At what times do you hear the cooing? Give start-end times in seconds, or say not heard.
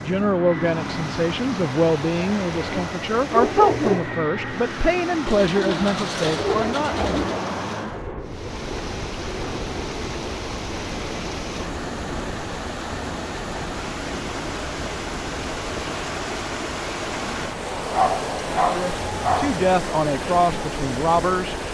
5.2-7.4.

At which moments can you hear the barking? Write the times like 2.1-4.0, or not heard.
2.5-4.2, 17.9-19.7.